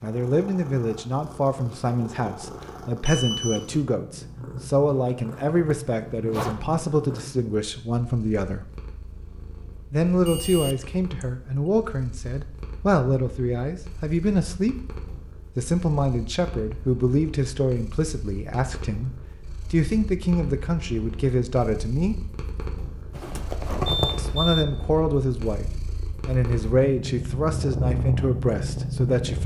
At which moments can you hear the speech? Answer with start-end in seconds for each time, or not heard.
0.0-8.7, 9.9-14.8, 15.6-22.2, 24.1-25.6, 26.2-29.4.